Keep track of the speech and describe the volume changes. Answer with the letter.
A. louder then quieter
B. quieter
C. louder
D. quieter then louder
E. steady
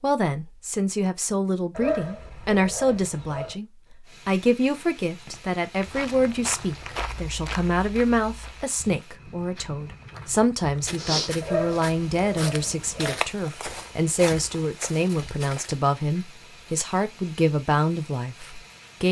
E.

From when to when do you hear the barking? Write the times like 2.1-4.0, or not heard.
1.8-3.5, 11.4-13.2.